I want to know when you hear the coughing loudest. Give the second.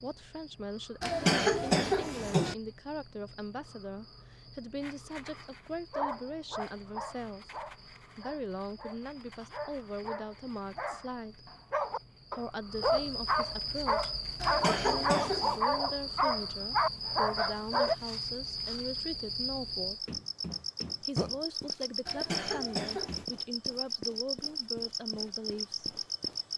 1 s.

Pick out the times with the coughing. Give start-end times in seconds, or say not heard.
1.0-2.5, 14.4-15.6, 22.1-23.2.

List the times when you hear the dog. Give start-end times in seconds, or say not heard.
5.9-11.1, 11.7-17.9.